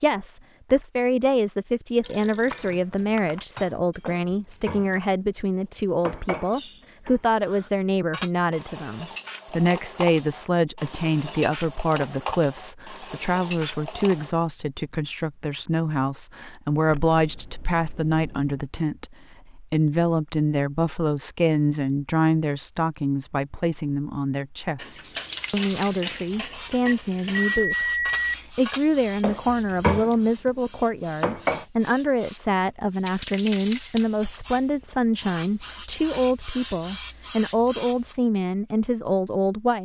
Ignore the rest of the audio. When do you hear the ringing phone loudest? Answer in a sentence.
The volume of the ringing phone peaks at 28 seconds.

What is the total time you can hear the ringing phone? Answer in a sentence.
You can hear the ringing phone for 4 seconds altogether.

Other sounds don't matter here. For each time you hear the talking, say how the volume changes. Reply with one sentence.
You can hear the talking from 0.0 to 39.7 s, at a steady volume.